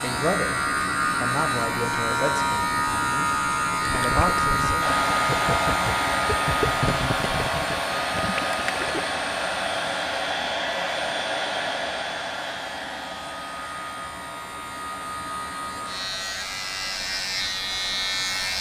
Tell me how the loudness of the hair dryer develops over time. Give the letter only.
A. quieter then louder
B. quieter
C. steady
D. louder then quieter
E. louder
B.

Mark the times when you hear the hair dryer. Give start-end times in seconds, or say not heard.
4.8-18.5.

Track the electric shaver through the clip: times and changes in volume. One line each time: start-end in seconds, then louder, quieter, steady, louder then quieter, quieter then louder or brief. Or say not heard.
0.0-18.5 quieter then louder.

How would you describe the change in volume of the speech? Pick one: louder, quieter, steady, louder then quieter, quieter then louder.
quieter then louder.